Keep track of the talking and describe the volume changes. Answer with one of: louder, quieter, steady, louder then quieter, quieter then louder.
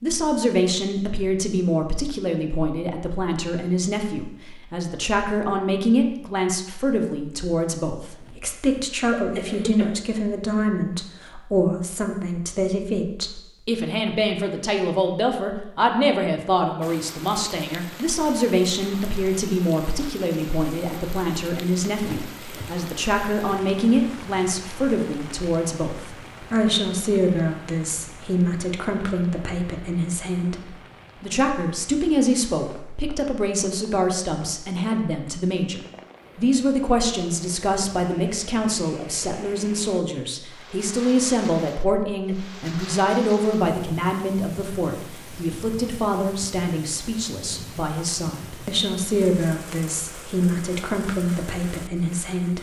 steady.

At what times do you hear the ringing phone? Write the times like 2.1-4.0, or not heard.
not heard.